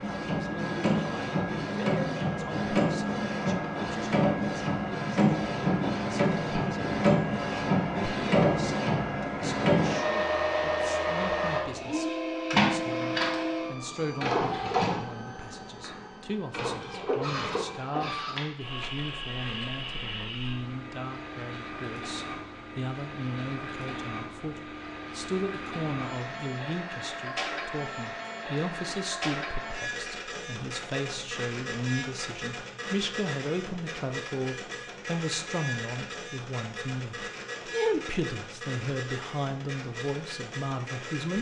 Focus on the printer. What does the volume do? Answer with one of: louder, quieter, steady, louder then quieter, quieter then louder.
quieter.